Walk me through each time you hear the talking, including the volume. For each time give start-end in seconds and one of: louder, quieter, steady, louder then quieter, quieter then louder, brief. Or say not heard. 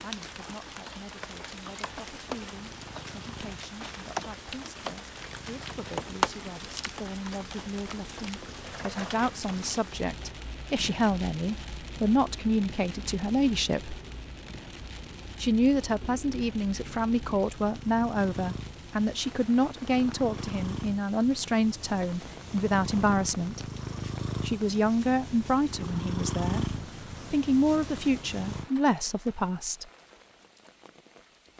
0.0-14.0 louder
15.4-23.6 steady
24.4-26.6 brief
27.3-29.9 brief.